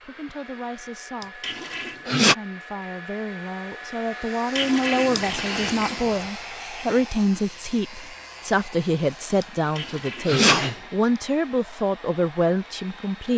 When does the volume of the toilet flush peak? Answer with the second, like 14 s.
5 s.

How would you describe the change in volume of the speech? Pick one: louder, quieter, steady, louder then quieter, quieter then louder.
louder.